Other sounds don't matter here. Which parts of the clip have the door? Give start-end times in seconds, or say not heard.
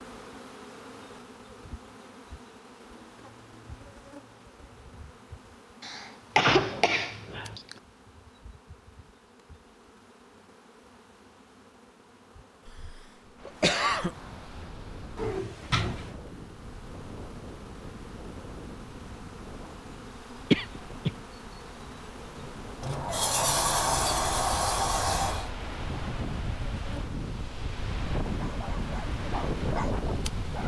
6.3-7.6, 15.2-16.1, 22.8-25.5.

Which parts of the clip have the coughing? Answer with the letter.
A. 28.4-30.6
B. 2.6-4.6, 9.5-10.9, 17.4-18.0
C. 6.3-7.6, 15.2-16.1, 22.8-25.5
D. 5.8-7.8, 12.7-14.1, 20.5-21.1
D.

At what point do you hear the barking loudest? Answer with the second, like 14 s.
30 s.